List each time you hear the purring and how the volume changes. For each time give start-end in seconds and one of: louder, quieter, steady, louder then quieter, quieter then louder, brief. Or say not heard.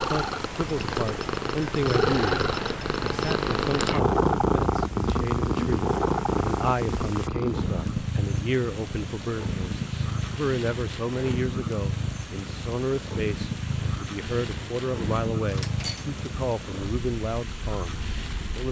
0.0-18.6 quieter.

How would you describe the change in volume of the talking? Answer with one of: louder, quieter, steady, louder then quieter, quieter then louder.
steady.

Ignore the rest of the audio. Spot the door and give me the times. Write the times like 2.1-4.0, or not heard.
15.4-16.1.